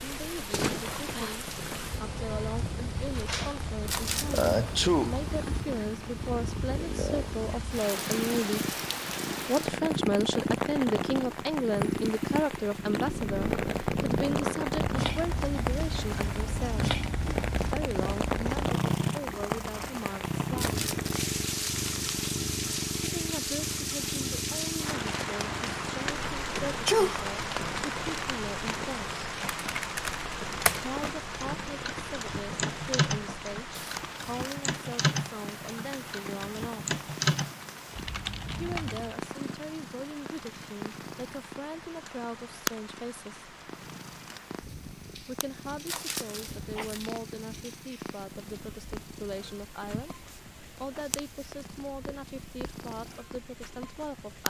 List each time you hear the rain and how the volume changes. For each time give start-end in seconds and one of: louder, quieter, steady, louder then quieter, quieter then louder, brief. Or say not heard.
0.0-54.4 quieter.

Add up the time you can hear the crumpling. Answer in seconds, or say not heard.
4 s.